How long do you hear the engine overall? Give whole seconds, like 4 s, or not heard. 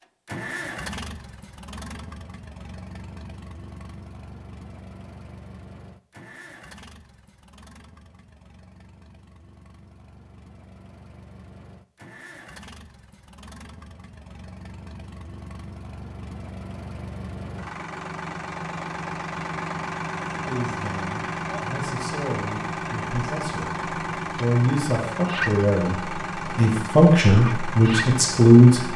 29 s.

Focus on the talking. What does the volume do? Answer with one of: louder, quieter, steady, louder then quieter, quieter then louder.
louder.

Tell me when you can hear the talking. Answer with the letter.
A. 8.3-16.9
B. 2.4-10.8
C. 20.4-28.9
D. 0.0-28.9
C.